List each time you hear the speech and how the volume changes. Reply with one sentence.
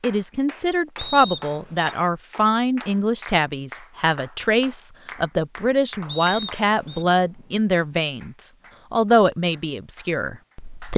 You can hear the speech from 0.0 to 10.9 s, at a steady volume.